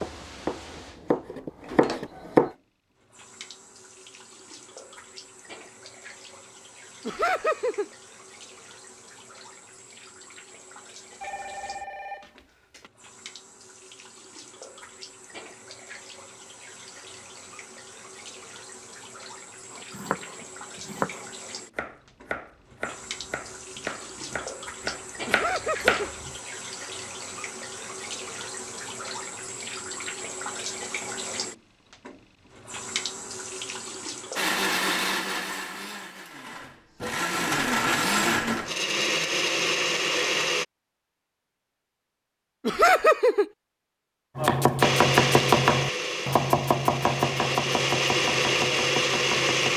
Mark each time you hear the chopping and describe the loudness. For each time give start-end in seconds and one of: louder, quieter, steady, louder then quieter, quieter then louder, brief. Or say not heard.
0.0-2.5 brief
19.7-26.3 quieter then louder
44.4-49.7 quieter.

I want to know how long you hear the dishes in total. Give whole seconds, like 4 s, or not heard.
not heard.